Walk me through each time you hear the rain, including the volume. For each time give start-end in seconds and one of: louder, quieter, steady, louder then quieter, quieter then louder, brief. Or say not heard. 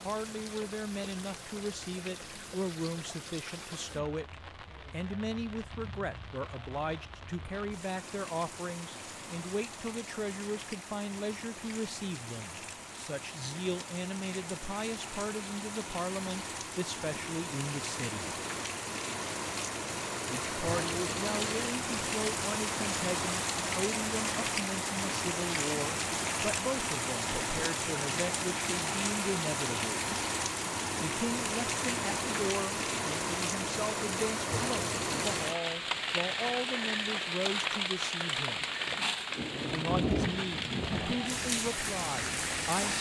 0.0-42.9 louder.